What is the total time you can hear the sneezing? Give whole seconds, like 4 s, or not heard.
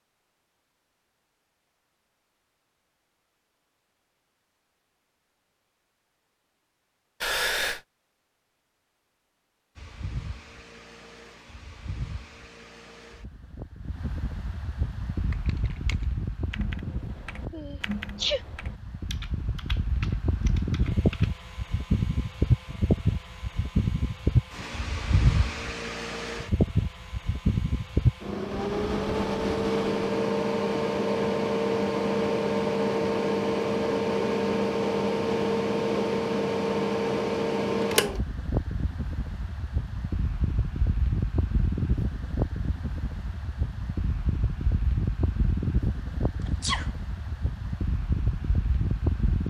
2 s.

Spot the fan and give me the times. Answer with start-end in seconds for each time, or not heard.
9.8-49.4.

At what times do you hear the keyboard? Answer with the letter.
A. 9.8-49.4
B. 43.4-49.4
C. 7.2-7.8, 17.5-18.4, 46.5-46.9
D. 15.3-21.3
D.